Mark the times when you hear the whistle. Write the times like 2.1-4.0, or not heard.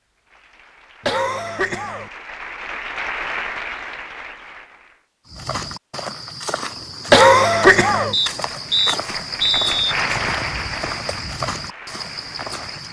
8.1-9.9.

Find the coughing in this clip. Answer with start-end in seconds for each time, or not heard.
1.1-2.1, 7.1-8.2.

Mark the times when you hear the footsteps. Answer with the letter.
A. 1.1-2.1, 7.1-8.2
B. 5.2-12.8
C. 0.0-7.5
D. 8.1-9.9
B.